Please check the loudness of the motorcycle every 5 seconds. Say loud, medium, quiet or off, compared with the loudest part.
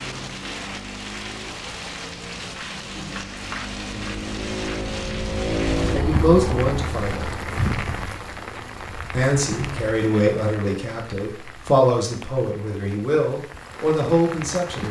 medium, loud, off.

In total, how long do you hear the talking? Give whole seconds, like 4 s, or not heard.
7 s.